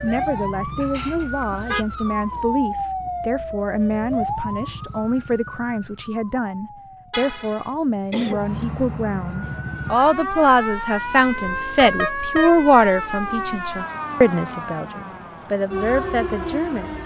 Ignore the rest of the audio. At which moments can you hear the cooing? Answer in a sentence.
You can't hear the cooing here.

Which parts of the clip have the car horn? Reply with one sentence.
The car horn can be heard from 0.8 to 1.9 s, from 7.1 to 7.7 s and from 11.4 to 12.6 s.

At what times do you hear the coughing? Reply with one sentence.
The coughing can be heard from 8.1 to 8.7 s.